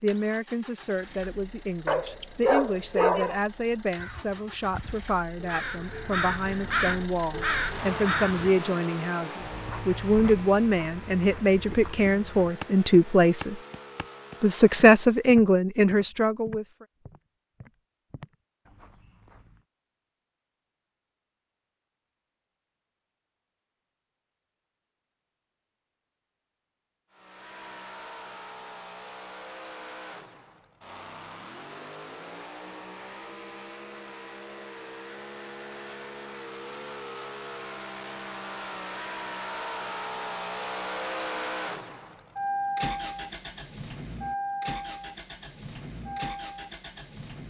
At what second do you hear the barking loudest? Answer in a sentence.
The loudest moment of the barking is at 3 seconds.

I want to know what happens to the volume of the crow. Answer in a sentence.
The volume of the crow goes up.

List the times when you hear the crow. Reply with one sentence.
The crow can be heard from 4.0 to 8.6 s.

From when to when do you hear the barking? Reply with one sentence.
The barking can be heard from 1.9 to 3.4 s.